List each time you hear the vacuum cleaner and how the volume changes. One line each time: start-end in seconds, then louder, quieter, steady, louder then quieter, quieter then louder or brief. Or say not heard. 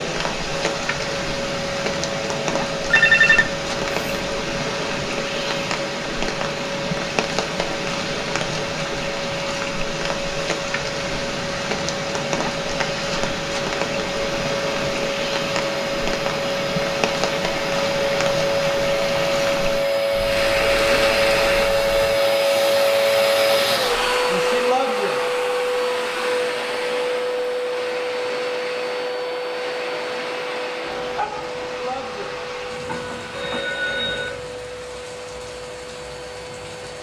0.0-36.9 louder then quieter.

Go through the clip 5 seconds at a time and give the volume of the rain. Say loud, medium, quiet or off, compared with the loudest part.
loud, loud, loud, loud, loud, medium, quiet, quiet.